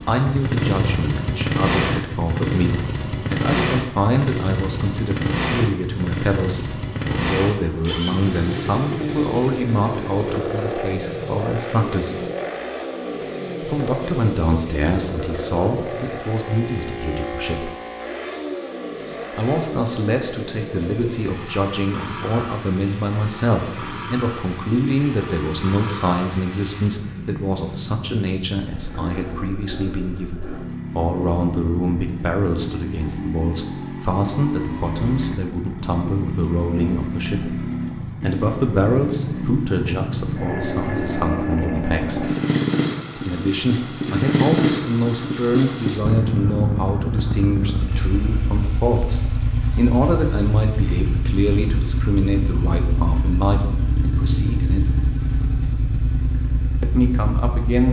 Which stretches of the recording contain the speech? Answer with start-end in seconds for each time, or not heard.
0.1-12.2, 13.6-17.7, 19.4-42.3, 43.1-54.9, 56.8-57.8.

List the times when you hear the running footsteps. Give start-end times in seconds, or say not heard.
not heard.